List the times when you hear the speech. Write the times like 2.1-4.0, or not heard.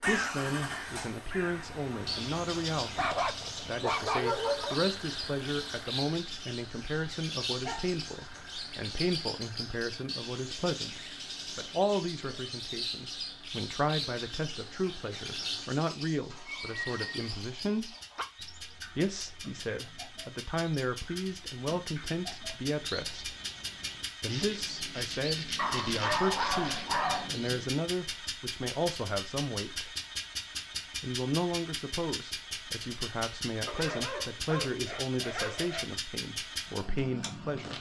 0.1-17.9, 18.9-23.4, 24.2-29.9, 30.9-37.7.